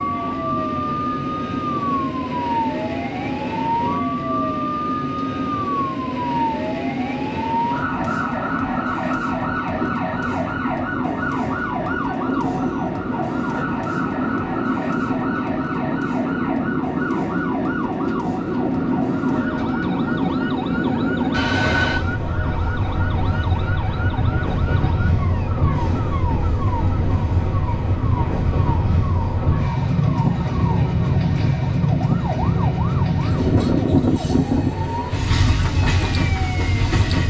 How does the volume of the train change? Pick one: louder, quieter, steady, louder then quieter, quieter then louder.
louder.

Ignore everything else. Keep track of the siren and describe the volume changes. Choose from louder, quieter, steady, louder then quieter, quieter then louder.
quieter.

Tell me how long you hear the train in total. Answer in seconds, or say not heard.
37 s.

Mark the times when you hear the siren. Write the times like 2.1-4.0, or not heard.
0.0-37.2.